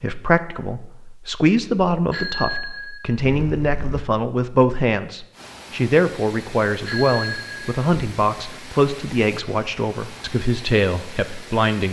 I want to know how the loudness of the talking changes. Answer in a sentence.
The loudness of the talking stays about the same.